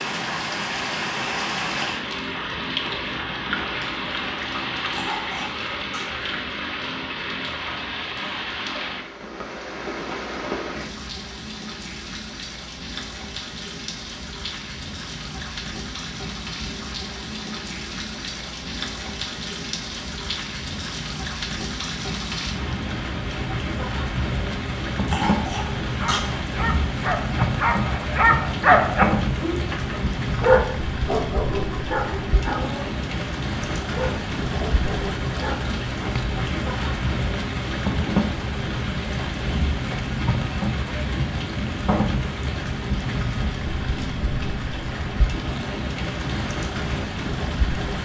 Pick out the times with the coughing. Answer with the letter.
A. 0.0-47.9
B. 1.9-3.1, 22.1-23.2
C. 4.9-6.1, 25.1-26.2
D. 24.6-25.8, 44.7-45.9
C.